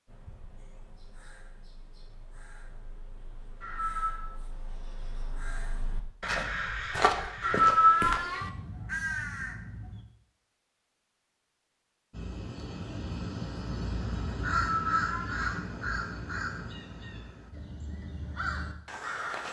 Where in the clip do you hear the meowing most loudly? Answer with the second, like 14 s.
8 s.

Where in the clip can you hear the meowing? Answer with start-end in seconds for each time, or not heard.
3.6-4.2, 7.4-8.5, 14.6-15.6.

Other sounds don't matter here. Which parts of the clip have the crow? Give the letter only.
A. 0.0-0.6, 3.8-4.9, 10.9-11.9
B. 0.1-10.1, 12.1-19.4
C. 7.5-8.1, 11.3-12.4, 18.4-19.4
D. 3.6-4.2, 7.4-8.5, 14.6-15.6
B.